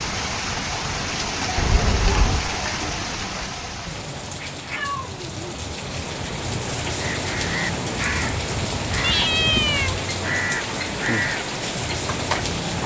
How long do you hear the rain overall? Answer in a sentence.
The rain can be heard for 13 seconds in total.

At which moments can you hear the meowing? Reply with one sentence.
The meowing can be heard from 1.6 to 2.5 s, from 4.3 to 5.6 s and from 9.0 to 9.9 s.